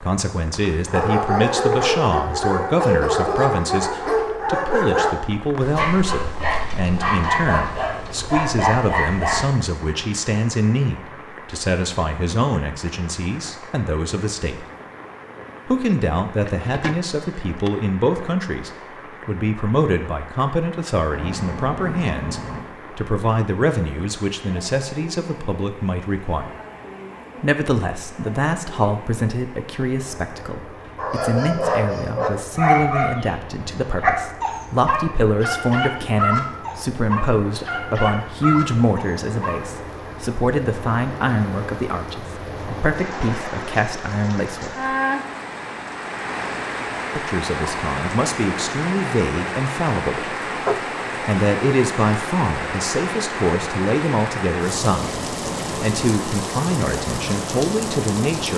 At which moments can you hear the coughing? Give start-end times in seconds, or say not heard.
not heard.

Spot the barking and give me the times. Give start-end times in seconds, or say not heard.
0.8-9.5, 30.9-39.6.